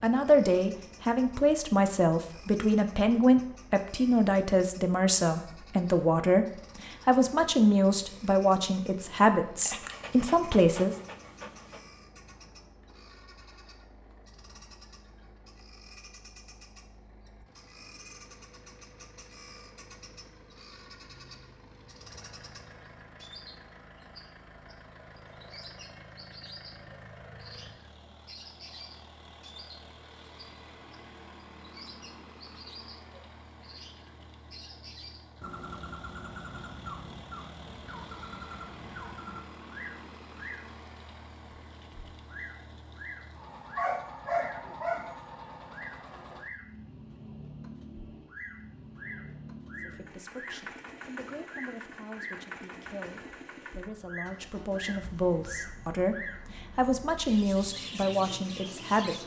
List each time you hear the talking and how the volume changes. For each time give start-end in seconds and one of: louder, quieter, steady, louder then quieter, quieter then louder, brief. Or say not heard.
0.0-10.9 steady
49.8-59.2 louder.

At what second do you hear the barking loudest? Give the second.
44 s.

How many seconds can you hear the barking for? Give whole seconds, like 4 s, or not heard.
4 s.